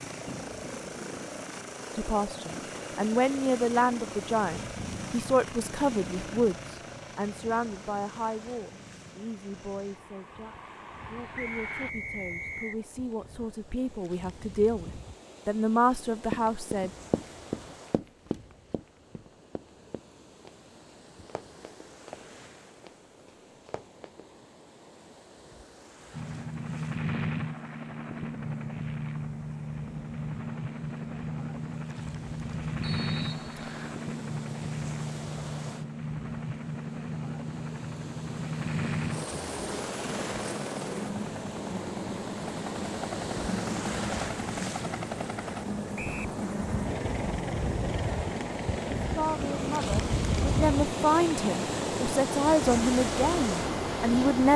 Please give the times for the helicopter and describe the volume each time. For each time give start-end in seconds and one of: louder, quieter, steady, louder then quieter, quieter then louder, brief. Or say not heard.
0.0-11.9 quieter
26.1-54.5 steady.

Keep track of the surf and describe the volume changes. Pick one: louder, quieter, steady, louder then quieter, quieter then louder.
louder.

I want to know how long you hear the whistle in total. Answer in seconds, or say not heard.
3 s.